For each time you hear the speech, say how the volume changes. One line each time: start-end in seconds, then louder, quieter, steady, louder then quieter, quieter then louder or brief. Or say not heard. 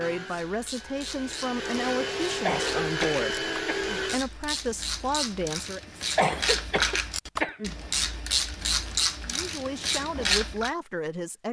0.0-6.0 steady
9.2-11.4 brief.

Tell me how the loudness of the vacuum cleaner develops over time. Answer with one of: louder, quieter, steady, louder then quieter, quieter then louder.
louder.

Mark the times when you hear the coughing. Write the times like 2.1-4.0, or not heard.
2.5-4.0, 6.2-7.8.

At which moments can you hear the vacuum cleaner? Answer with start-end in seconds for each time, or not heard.
0.0-4.2.